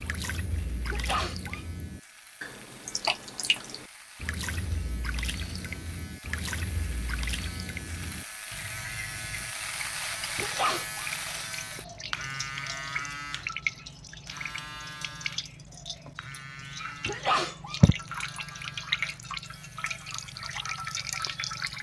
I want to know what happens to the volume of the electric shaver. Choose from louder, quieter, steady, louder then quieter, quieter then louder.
louder then quieter.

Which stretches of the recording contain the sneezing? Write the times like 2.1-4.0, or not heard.
0.8-1.6, 10.3-11.6, 17.1-18.2.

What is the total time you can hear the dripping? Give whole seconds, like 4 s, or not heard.
22 s.